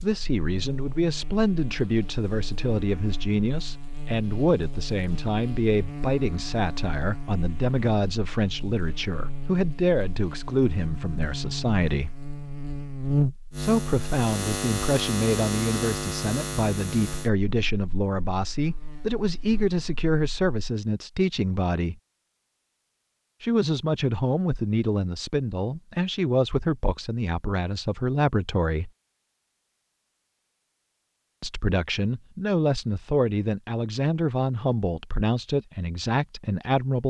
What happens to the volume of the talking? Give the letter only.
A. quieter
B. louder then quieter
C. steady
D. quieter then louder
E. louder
C.